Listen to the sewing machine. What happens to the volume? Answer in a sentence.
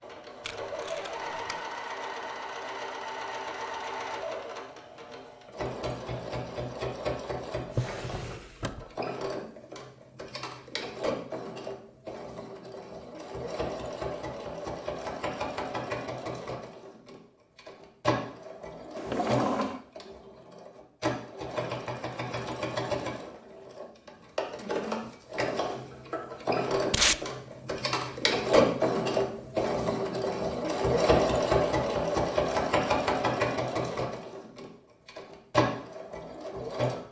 The loudness of the sewing machine goes up.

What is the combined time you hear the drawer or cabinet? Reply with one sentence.
You can hear the drawer or cabinet for 2 seconds altogether.